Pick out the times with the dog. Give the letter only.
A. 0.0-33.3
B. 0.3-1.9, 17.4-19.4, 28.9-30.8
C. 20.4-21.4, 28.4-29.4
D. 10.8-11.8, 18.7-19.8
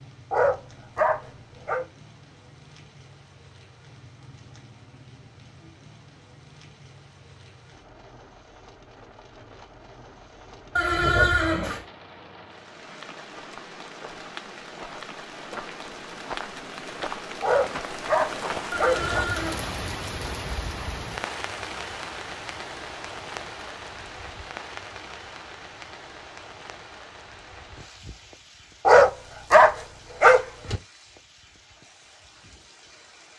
B.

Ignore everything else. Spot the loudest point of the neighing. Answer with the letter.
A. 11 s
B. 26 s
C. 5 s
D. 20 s
A.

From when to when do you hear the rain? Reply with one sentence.
The rain can be heard from 0.0 to 33.3 s.